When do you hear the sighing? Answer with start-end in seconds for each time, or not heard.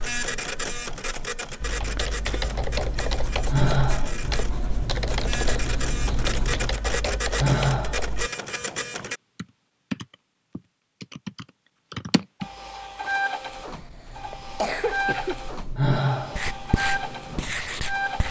3.5-4.2, 7.3-8.0, 15.8-16.4.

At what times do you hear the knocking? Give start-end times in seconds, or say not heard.
not heard.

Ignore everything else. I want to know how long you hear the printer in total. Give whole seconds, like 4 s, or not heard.
15 s.